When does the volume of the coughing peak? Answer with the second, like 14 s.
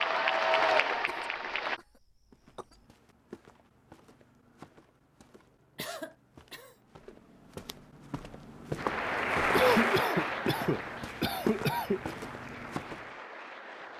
10 s.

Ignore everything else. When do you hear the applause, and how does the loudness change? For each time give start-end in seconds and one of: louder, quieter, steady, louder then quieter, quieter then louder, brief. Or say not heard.
0.0-1.8 brief
8.8-13.9 quieter.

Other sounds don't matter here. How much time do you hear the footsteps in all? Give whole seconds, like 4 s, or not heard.
11 s.